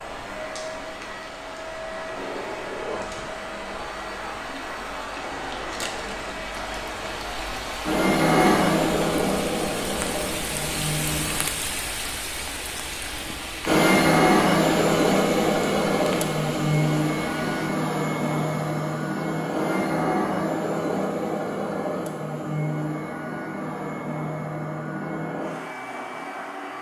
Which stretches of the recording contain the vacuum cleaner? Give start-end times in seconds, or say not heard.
0.0-11.4, 13.7-26.7.